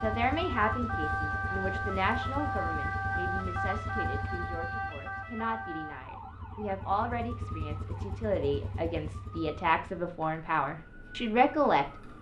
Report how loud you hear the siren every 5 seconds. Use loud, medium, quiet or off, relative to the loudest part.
loud, medium, quiet.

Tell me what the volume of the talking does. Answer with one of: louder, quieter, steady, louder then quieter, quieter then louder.
quieter then louder.